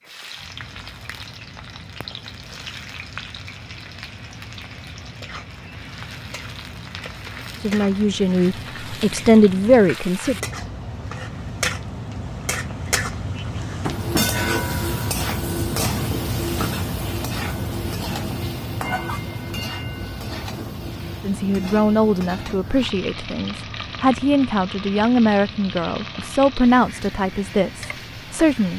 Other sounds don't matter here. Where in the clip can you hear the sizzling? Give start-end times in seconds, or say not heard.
0.0-28.7.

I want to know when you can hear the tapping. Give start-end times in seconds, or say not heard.
13.8-14.2.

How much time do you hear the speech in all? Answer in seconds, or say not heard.
10 s.